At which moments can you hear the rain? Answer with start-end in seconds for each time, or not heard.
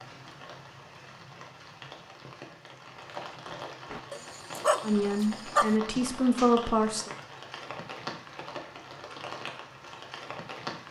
0.0-10.8.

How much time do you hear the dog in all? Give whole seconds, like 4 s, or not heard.
3 s.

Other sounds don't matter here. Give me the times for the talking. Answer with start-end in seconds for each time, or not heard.
4.8-7.1.